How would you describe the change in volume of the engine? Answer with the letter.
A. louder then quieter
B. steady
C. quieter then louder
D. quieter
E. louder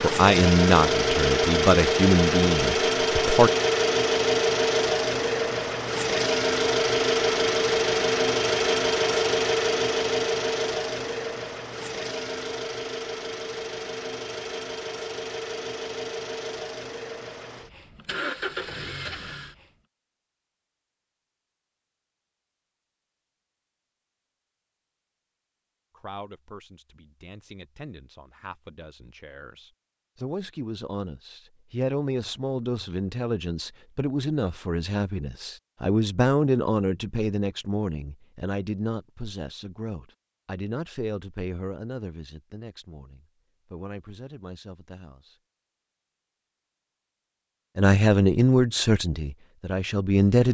D.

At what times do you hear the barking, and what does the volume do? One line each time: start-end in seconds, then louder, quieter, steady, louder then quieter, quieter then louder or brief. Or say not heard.
not heard.